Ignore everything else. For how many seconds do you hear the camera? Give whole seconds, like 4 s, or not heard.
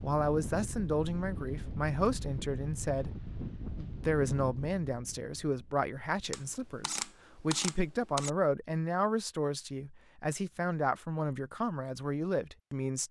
2 s.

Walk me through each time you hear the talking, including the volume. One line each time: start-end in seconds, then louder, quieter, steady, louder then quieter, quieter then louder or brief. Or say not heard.
0.0-13.0 steady.